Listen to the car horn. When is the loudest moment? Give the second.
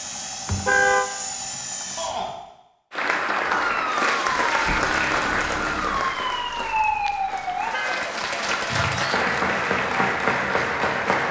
1 s.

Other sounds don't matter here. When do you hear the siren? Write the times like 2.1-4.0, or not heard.
3.5-7.8.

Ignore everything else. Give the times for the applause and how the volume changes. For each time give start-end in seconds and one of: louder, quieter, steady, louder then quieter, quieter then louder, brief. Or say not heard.
2.9-11.2 quieter then louder.